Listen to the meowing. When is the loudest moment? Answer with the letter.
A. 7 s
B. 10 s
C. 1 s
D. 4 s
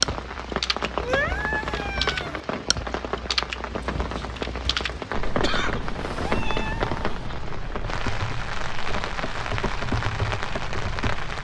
C.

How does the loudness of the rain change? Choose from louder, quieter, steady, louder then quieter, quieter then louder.
steady.